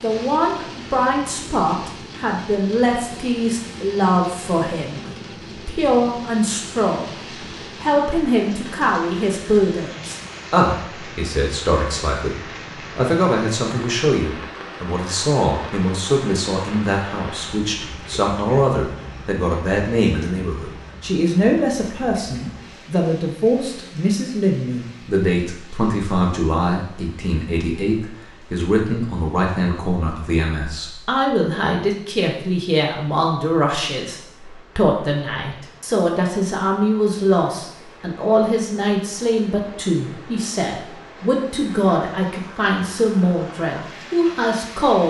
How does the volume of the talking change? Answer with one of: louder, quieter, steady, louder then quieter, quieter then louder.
steady.